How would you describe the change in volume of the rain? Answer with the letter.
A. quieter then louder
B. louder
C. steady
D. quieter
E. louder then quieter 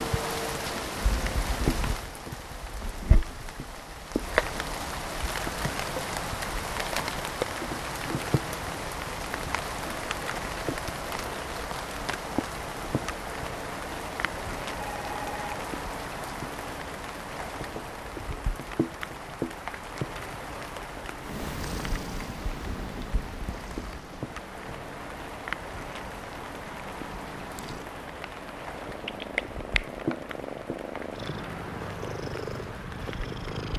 D.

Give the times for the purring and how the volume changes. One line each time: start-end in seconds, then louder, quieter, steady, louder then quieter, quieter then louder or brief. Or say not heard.
21.2-33.7 quieter then louder.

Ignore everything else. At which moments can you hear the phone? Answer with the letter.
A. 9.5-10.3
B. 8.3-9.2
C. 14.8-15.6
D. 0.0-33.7
C.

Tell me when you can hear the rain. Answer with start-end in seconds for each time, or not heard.
0.0-33.7.